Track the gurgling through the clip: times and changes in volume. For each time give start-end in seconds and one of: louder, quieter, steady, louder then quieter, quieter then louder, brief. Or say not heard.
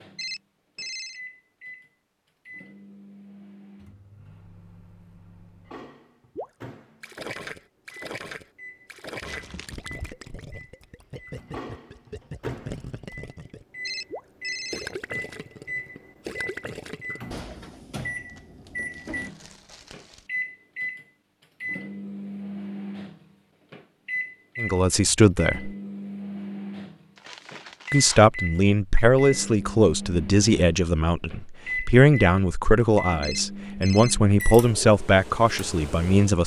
6.3-17.2 steady.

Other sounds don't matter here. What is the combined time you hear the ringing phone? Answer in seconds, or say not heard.
3 s.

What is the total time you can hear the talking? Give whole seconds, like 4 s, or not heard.
10 s.